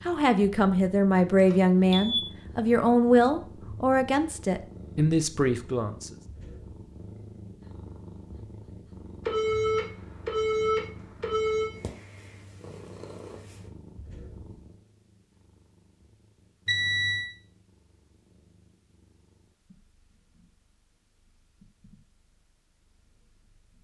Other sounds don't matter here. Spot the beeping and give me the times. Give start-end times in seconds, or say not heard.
1.4-2.2, 9.2-11.8, 16.6-17.3.